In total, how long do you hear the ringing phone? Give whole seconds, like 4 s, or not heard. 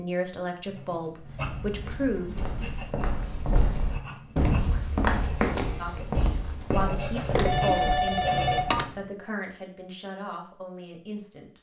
2 s.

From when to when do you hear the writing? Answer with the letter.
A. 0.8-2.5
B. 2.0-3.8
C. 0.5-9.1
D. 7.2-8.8
C.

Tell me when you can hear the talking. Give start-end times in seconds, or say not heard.
0.0-2.4, 5.8-11.5.